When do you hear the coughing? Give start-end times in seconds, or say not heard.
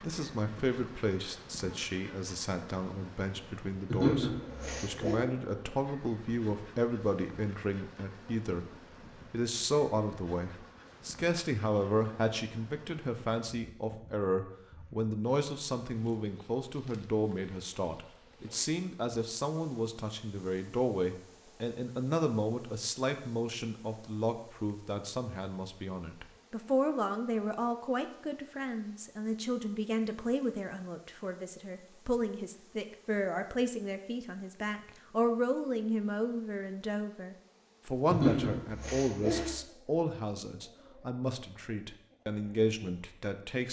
3.9-5.2, 38.1-39.5.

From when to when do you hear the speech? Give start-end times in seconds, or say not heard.
0.0-8.7, 9.3-43.6.